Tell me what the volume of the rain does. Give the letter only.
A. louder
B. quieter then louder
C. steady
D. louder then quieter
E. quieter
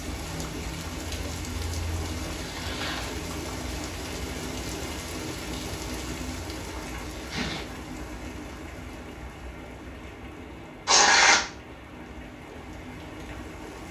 E.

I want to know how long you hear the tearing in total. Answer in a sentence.
You can hear the tearing for 2 seconds altogether.